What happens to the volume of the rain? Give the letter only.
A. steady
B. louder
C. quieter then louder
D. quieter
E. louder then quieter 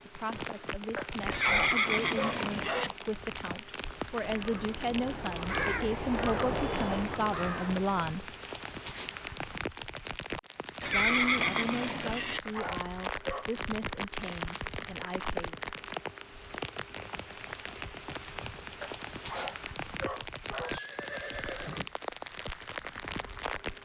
A.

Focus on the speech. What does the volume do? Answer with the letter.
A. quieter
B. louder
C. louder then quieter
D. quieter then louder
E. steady
C.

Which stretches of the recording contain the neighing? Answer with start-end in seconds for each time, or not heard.
1.3-2.9, 10.8-12.4, 20.6-21.9.